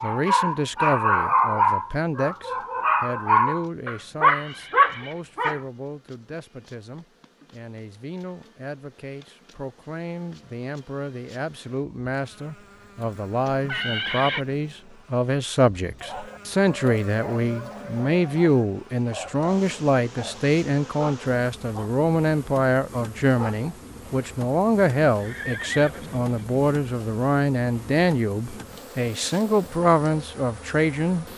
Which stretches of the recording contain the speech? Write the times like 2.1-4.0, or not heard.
0.0-31.2.